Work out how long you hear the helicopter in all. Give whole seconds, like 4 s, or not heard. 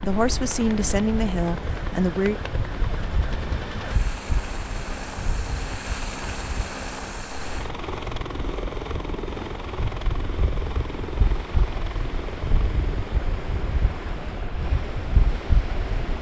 16 s.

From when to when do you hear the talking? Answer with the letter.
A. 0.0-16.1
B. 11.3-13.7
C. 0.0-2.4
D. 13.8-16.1
C.